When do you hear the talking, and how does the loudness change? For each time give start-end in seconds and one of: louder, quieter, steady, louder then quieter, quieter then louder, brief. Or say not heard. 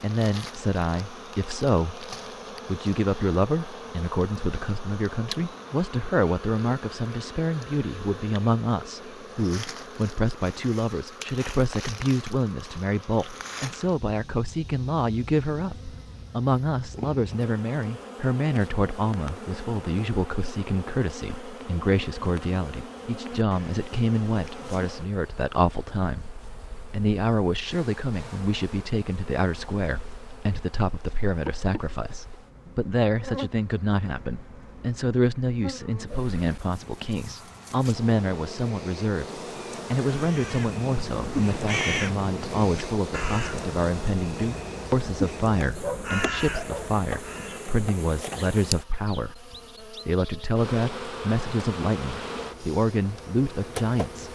0.0-54.3 steady.